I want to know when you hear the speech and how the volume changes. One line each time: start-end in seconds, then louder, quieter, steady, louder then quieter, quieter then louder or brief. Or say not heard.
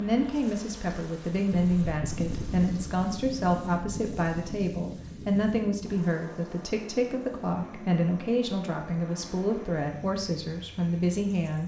0.0-11.6 steady.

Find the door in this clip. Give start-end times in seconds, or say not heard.
not heard.